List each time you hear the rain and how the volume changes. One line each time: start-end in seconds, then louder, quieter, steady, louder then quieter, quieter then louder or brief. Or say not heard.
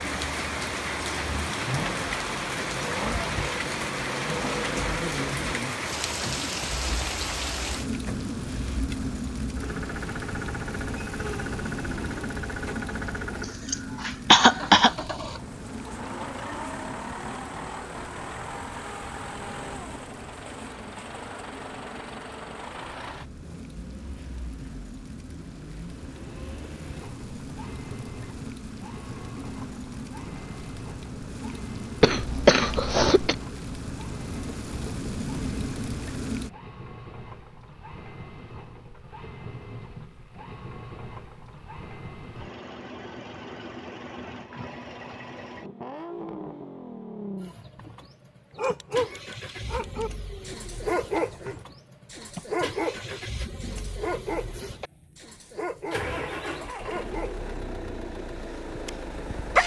0.0-36.5 quieter then louder.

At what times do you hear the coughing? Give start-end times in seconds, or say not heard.
13.7-14.9, 32.0-33.4.